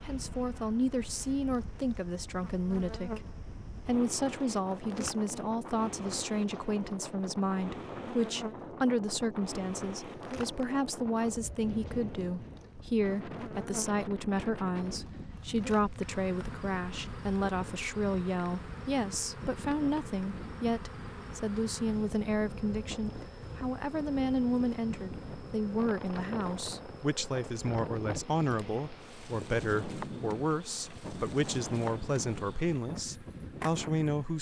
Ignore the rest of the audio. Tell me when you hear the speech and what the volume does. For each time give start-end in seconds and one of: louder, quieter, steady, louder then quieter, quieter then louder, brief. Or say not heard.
0.0-34.3 steady.